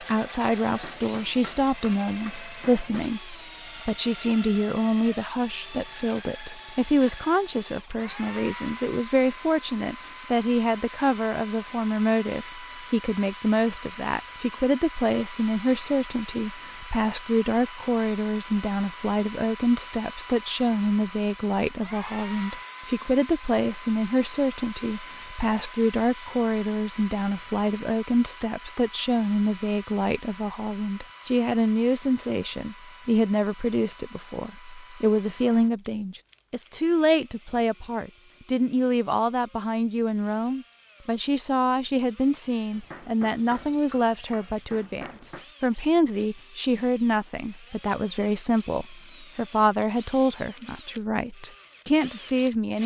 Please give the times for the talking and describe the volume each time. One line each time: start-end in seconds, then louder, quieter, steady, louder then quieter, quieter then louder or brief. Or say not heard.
0.0-52.8 steady.